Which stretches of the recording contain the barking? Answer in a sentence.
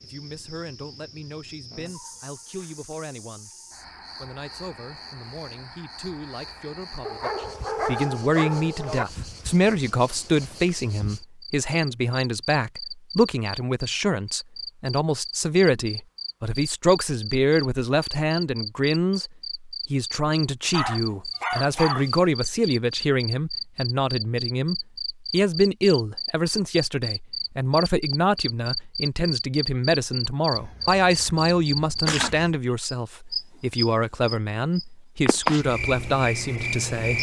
The barking can be heard from 7.0 to 9.1 s, from 20.7 to 22.1 s and from 30.5 to 32.5 s.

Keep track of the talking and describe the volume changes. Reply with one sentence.
The loudness of the talking goes up.